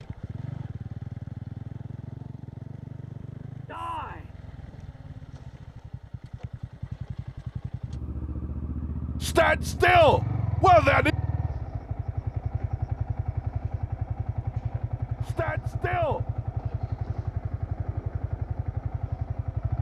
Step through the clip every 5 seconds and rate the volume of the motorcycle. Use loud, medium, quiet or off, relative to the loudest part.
medium, medium, loud, loud.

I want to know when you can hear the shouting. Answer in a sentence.
You can hear the shouting from 3.6 to 4.3 s, from 9.2 to 11.2 s and from 15.2 to 16.2 s.